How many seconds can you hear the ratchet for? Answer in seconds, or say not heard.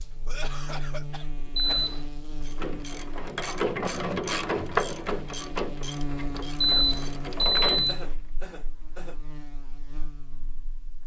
6 s.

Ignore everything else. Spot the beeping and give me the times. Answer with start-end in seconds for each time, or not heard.
1.6-2.0, 6.6-8.1.